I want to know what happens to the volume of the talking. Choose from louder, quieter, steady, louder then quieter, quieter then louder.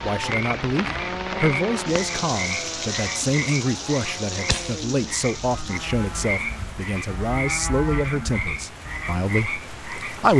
steady.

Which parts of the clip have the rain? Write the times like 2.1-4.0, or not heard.
0.0-10.3.